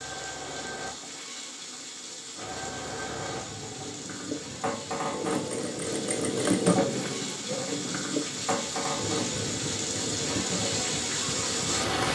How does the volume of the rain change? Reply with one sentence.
The volume of the rain goes up.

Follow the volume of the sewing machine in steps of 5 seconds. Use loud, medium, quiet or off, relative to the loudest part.
medium, loud, medium.